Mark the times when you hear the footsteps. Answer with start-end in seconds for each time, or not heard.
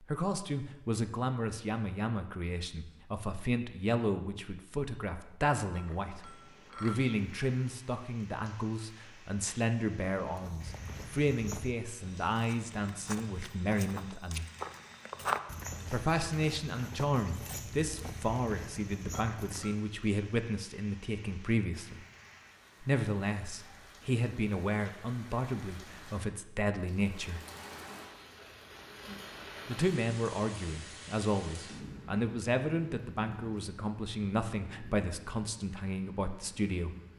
10.2-19.8.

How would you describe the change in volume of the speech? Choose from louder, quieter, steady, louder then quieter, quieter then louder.
steady.